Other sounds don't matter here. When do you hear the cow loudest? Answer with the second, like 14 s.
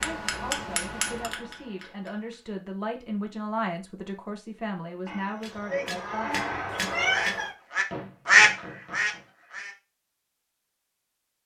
6 s.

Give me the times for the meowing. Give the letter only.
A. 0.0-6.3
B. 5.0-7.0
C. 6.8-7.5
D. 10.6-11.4
C.